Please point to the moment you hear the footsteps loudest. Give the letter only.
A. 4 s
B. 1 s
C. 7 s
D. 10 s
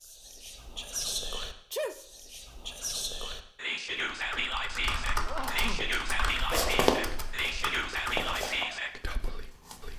C.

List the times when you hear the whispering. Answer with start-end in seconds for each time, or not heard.
0.0-9.9.